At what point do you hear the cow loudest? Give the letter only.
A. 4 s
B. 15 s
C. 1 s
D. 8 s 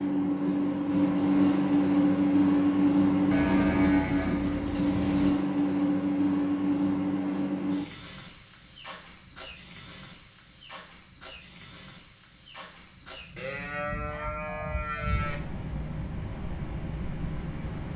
A.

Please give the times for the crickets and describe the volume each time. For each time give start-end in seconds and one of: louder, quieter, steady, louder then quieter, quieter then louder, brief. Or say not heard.
0.0-17.9 quieter.